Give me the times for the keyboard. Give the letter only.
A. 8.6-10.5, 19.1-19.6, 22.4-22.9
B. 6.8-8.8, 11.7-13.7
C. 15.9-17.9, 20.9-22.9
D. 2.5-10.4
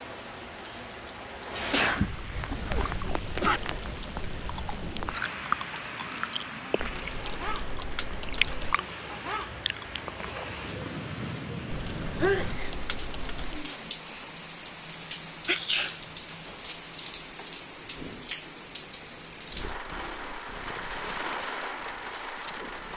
B.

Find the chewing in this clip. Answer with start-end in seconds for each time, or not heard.
2.5-10.4.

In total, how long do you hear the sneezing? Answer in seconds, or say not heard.
3 s.